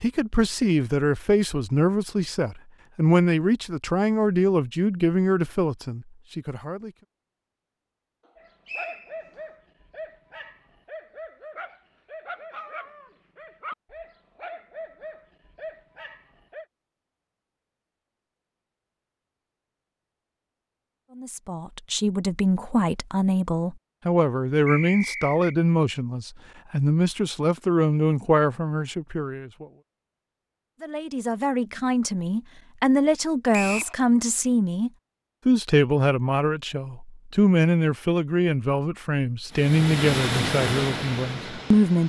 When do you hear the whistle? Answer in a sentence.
The whistle can be heard from 8.7 to 9.2 s, from 24.6 to 25.6 s and from 33.5 to 34.0 s.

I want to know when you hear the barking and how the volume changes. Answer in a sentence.
The barking can be heard from 8.3 to 16.6 s, at a steady volume.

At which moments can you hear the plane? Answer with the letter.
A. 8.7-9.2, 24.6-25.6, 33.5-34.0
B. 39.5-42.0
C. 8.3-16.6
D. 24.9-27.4
B.